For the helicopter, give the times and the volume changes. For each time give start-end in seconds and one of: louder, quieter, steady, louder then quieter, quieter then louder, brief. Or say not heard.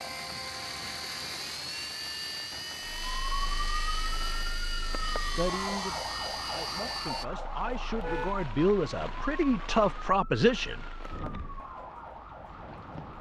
0.0-7.2 steady.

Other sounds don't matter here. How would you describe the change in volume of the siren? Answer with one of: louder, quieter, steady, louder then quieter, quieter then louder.
quieter.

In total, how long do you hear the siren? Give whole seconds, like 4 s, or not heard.
10 s.